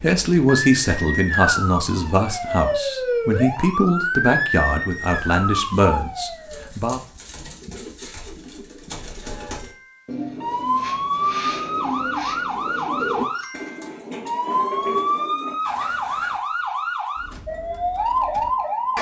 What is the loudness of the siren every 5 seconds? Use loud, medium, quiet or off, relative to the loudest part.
loud, medium, loud, loud.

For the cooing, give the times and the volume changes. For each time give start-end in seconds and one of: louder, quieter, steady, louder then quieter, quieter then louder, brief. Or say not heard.
5.0-16.4 louder.